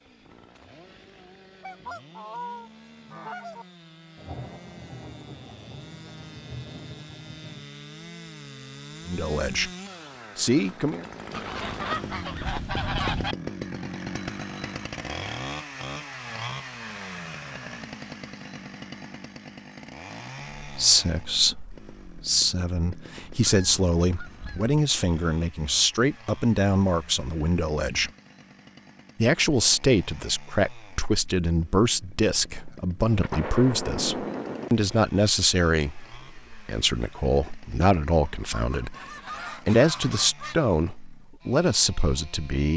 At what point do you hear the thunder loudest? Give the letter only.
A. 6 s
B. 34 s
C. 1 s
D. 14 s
B.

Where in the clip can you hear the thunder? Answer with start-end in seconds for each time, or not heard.
4.2-7.7, 33.0-34.7.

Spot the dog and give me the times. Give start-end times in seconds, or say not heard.
not heard.